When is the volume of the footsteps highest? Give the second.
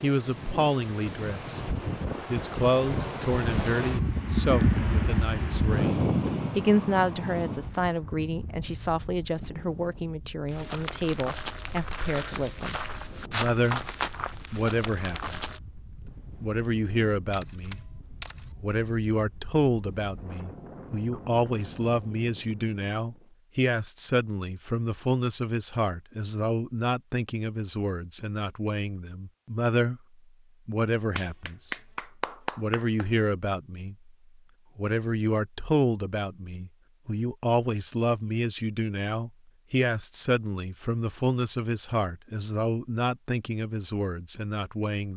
14 s.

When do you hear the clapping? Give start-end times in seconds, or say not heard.
31.1-33.0.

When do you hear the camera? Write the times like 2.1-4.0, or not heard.
17.3-18.5.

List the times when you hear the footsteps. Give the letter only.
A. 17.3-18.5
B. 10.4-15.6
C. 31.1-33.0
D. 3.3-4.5
B.